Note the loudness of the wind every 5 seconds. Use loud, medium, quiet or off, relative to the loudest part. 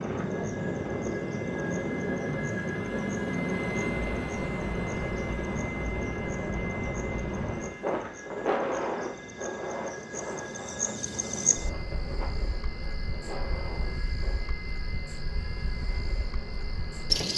loud, loud, medium, off.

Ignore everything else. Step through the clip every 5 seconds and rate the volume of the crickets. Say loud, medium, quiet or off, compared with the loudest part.
quiet, quiet, medium, loud.